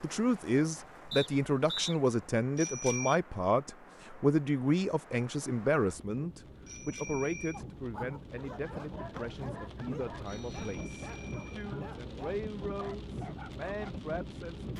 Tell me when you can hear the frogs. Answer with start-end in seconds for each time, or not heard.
not heard.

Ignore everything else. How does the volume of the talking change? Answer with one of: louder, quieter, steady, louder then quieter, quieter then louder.
quieter.